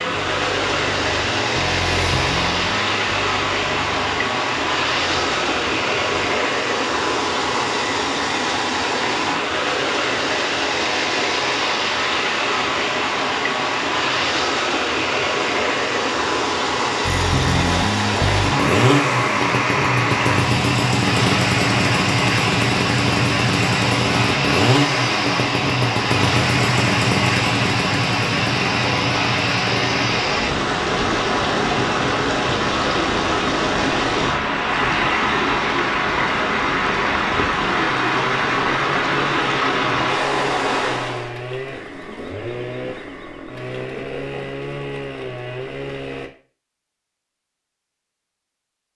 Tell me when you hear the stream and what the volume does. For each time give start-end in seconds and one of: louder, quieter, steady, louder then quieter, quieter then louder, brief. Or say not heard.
0.0-41.4 steady.